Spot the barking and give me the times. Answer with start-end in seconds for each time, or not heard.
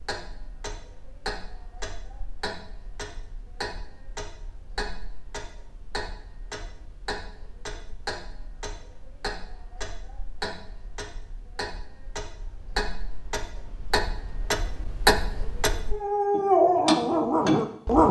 15.9-18.0.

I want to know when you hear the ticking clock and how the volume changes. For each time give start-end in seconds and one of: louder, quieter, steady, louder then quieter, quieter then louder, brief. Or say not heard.
0.0-18.0 louder.